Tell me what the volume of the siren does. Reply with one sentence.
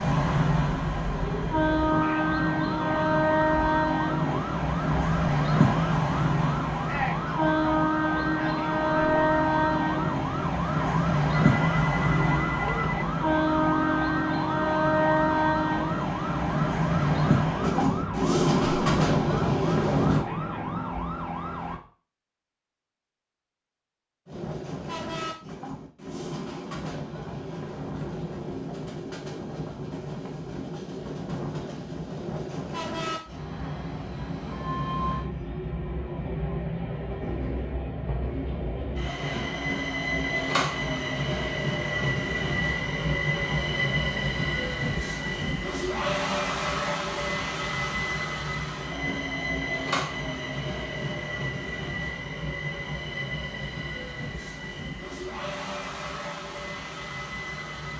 The volume of the siren stays about the same.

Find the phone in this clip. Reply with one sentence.
You can hear the phone from 11.5 to 13.1 s.